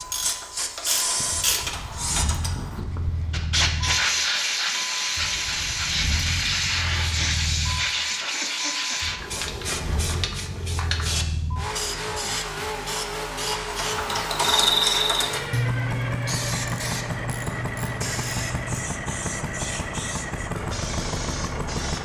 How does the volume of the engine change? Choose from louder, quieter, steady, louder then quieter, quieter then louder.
louder.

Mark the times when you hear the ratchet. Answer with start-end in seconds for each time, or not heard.
0.0-2.9, 13.7-18.9.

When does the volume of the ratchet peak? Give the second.
15 s.